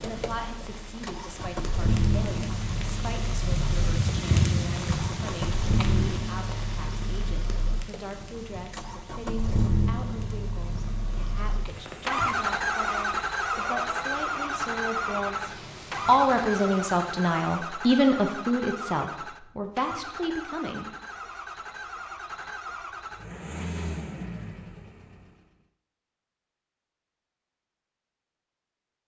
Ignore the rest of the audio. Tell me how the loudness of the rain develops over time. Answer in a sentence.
The volume of the rain goes up, then down.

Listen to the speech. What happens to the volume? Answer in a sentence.
The loudness of the speech goes up.